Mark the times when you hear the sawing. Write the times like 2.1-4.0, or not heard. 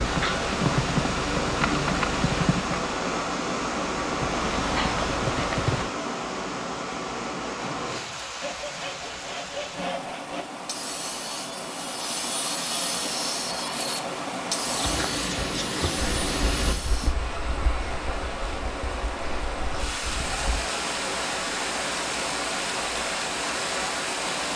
7.5-17.1.